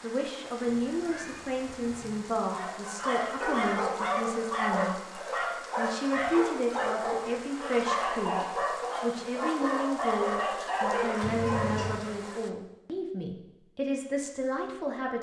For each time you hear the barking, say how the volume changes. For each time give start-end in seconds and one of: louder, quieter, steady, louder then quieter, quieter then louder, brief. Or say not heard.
2.4-12.3 steady.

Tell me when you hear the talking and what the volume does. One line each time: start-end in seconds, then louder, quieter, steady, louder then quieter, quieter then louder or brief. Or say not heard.
0.0-15.1 steady.